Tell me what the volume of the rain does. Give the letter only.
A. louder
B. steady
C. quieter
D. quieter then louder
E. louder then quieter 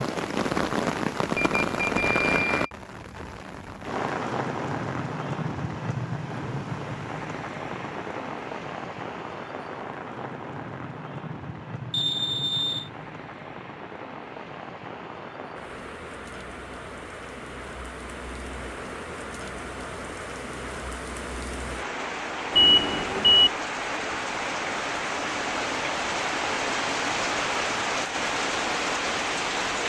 D.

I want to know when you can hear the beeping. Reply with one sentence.
The beeping can be heard from 1.4 to 2.7 s, from 11.9 to 12.9 s and from 22.5 to 23.5 s.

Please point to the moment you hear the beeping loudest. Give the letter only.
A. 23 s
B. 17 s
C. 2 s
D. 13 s
A.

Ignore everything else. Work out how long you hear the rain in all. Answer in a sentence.
The rain can be heard for 30 seconds in total.